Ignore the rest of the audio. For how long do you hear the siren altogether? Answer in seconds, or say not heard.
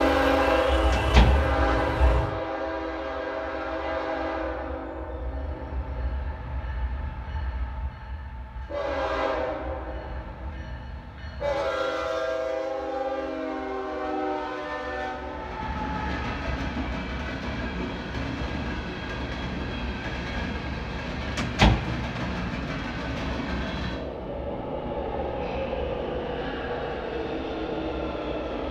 2 s.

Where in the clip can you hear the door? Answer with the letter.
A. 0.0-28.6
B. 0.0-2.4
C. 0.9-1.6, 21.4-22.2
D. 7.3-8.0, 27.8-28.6
C.